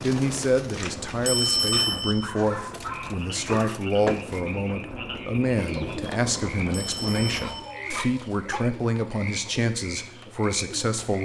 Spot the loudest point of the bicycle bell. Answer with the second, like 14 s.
2 s.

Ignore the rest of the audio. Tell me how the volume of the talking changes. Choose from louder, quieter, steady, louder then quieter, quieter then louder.
steady.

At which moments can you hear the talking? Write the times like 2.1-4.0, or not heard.
0.0-11.2.